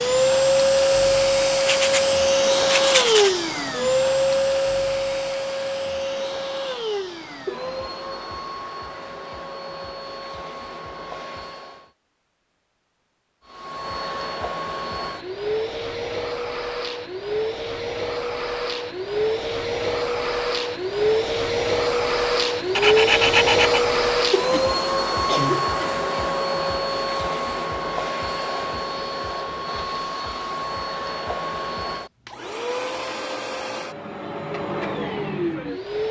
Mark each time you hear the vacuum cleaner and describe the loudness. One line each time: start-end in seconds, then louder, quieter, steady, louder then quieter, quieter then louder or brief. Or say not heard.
0.0-11.9 quieter
13.4-36.0 louder then quieter.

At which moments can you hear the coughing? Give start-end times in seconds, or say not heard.
24.5-25.8.